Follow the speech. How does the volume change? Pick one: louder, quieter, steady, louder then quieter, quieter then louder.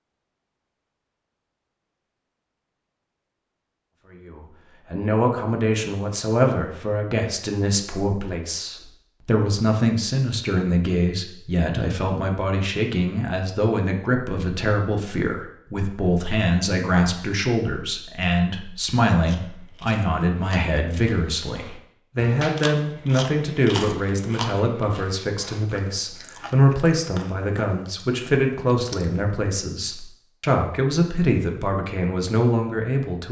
steady.